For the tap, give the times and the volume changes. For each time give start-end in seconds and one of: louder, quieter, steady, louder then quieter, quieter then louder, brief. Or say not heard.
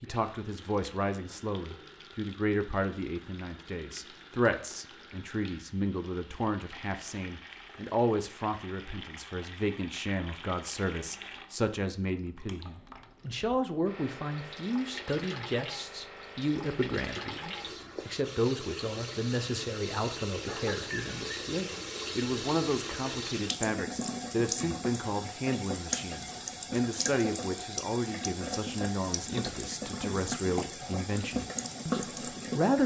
0.0-32.8 louder.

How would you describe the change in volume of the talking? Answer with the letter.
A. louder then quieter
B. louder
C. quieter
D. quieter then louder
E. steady
E.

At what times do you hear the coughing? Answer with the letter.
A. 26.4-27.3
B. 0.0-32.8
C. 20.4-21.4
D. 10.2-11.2
C.